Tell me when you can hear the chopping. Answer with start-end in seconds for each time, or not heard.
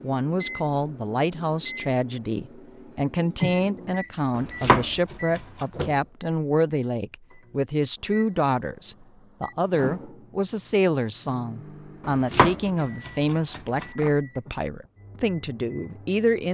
4.3-5.7, 12.1-13.8.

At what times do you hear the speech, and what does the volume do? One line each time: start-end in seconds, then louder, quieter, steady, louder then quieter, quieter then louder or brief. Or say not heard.
0.0-16.4 steady.